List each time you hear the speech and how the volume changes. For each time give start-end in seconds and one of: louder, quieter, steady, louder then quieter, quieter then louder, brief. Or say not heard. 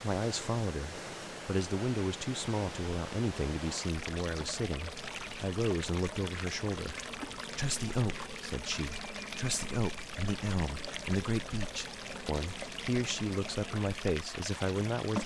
0.0-15.2 steady.